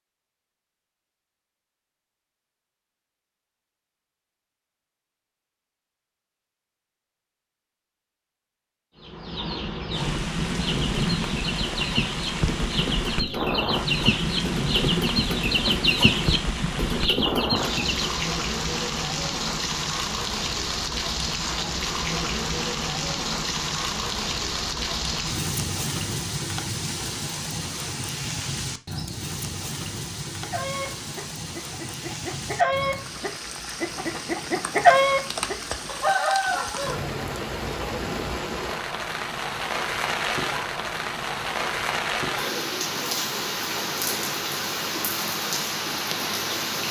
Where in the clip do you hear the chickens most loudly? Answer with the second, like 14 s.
35 s.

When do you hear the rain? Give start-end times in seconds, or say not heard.
9.9-46.8.